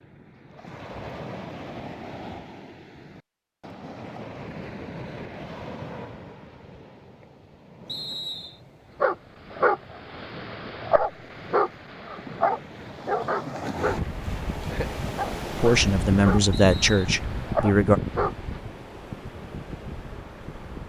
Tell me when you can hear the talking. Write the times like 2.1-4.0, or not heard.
15.6-18.0.